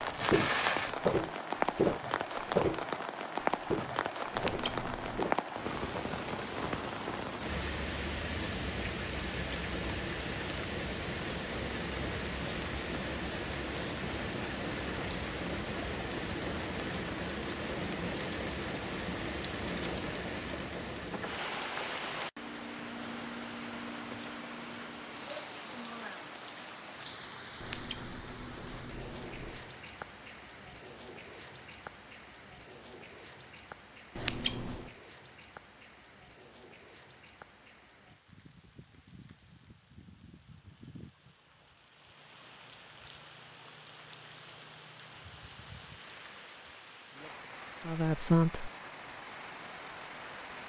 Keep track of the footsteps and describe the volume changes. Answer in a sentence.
The loudness of the footsteps goes down.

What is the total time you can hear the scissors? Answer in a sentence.
You can hear the scissors for 4 seconds altogether.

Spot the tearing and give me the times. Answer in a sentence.
The tearing can be heard from 0.1 to 0.9 s.